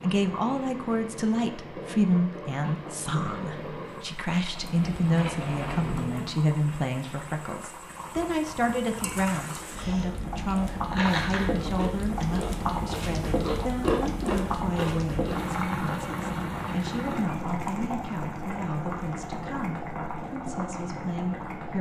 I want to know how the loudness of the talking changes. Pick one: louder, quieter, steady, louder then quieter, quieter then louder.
quieter.